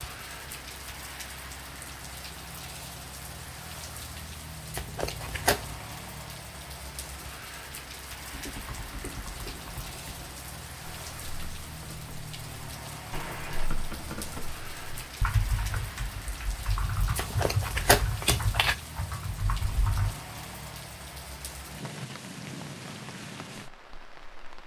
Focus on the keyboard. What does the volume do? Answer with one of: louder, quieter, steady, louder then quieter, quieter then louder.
louder.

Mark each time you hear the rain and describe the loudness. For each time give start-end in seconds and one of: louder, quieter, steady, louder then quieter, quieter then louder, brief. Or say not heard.
0.0-24.6 steady.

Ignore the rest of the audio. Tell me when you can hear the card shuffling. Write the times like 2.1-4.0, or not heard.
4.7-5.8, 17.1-18.8.